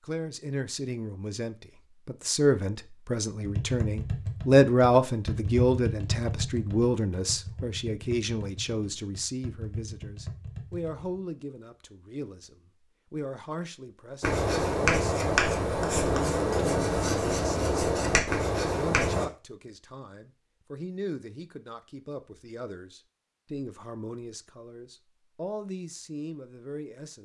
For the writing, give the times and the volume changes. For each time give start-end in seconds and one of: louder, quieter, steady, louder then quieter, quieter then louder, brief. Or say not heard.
14.2-19.2 steady.